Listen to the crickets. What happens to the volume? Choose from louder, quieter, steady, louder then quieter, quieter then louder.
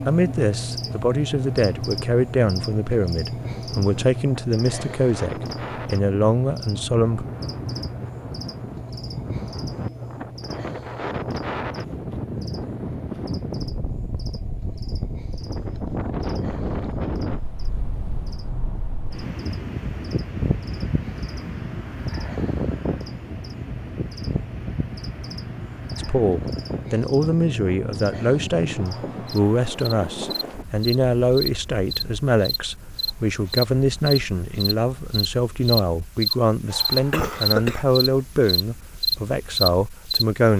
quieter then louder.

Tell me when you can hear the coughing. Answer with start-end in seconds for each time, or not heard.
36.7-37.9.